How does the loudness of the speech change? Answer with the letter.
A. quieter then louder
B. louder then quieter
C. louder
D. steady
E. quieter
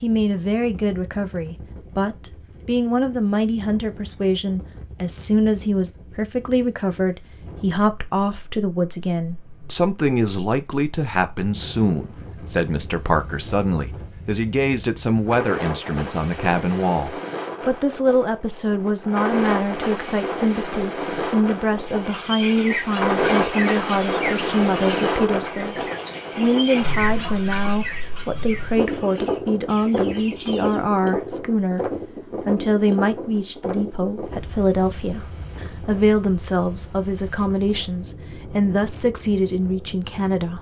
D.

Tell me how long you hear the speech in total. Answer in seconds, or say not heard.
40 s.